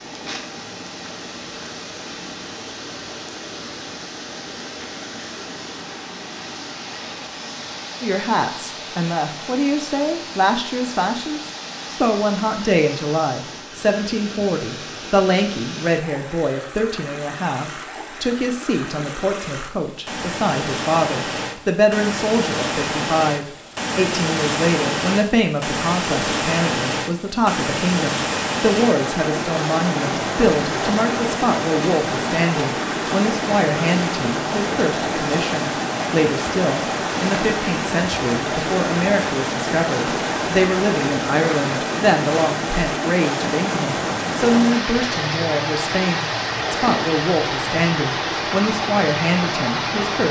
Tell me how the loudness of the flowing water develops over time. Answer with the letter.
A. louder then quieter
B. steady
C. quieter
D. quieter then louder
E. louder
E.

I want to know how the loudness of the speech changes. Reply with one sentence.
The loudness of the speech stays about the same.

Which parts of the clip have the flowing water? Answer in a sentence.
You can hear the flowing water from 0.0 to 50.2 s.